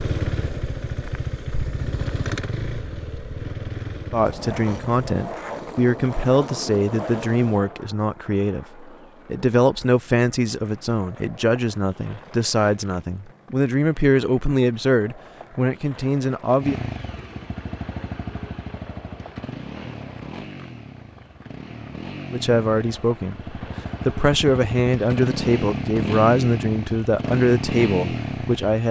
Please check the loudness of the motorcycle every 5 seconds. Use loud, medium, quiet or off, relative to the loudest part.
loud, off, off, medium, medium, loud.